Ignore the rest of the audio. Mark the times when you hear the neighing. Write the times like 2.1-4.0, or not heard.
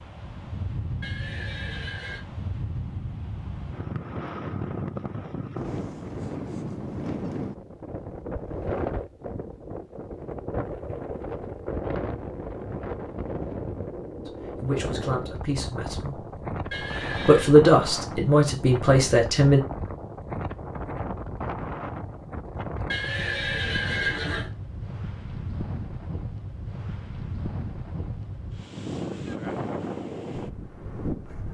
1.0-2.2, 16.7-17.5, 22.9-24.5.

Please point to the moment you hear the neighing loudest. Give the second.
24 s.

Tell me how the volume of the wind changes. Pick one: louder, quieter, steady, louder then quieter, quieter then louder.
steady.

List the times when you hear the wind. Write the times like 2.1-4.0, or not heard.
0.0-31.4.